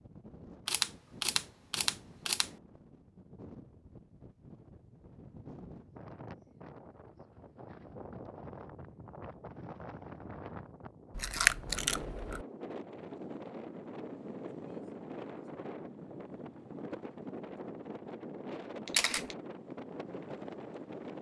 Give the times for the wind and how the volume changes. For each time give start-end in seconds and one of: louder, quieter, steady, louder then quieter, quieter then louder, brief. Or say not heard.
0.0-21.1 louder.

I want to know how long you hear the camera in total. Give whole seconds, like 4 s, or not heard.
4 s.